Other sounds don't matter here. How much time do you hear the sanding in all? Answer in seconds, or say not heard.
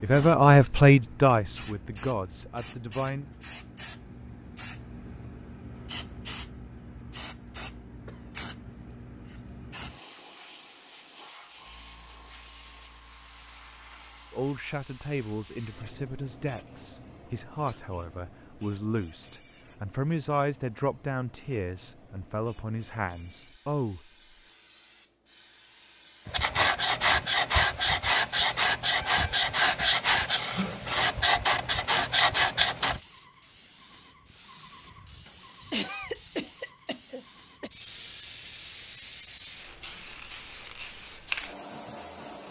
7 s.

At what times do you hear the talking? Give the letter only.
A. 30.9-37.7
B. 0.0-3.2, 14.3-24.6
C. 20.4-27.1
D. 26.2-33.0
B.